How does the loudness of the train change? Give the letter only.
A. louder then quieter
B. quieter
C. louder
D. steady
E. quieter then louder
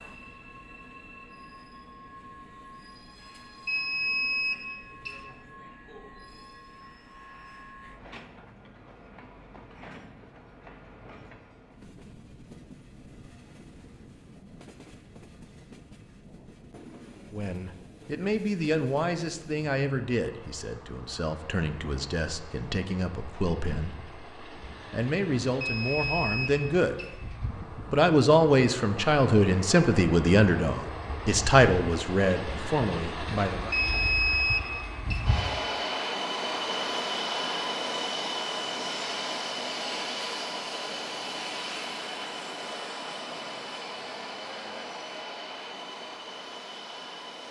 C.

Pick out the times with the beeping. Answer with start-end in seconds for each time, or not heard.
3.6-5.2, 25.6-27.1, 33.7-35.2.